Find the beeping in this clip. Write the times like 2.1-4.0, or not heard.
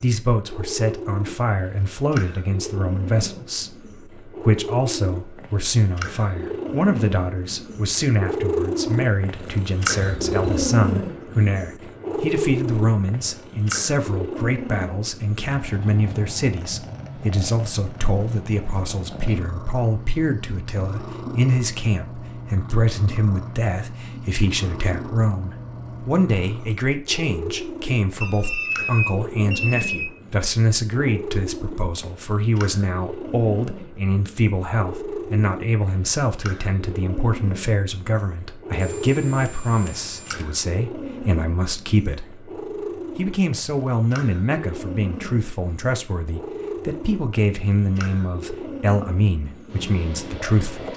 10.0-10.6, 28.2-30.1, 38.8-40.5.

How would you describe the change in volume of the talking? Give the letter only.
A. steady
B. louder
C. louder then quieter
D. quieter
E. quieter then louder
A.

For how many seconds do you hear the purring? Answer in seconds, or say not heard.
51 s.